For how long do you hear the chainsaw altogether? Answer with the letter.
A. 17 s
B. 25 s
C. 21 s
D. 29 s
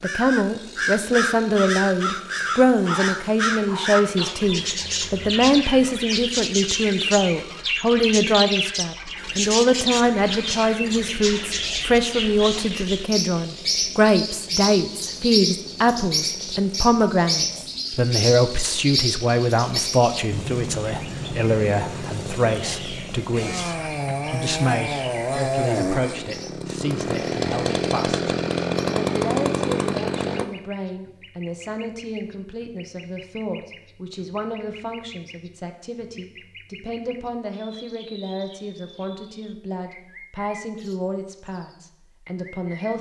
D.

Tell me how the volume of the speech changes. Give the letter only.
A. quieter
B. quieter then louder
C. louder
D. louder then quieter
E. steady
A.